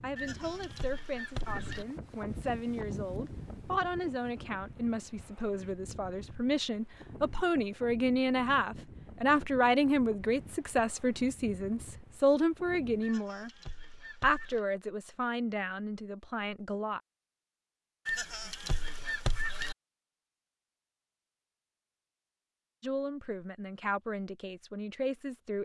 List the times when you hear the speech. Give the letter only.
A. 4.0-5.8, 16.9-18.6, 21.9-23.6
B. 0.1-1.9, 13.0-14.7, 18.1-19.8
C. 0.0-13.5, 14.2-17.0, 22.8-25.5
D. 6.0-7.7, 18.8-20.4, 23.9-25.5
C.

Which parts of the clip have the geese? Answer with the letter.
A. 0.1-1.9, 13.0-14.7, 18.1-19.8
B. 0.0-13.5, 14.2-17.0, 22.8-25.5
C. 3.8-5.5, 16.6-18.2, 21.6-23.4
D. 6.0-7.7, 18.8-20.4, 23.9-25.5
A.